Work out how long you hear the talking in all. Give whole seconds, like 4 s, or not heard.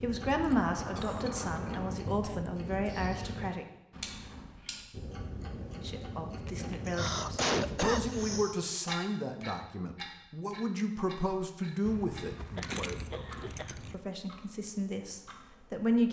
14 s.